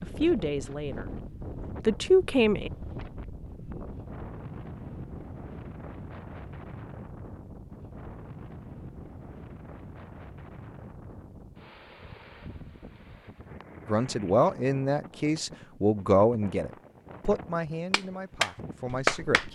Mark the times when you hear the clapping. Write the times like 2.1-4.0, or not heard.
17.9-19.4.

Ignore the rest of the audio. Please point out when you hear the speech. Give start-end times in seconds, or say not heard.
0.0-1.2, 1.8-2.7, 13.8-19.4.